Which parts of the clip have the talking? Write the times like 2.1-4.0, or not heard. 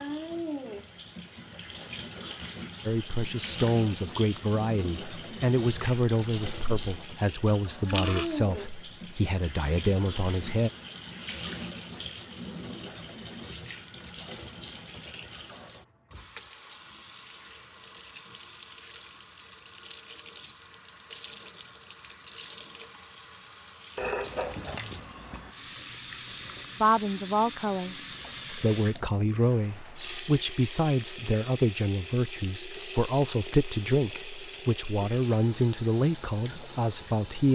2.9-10.7, 26.8-37.5.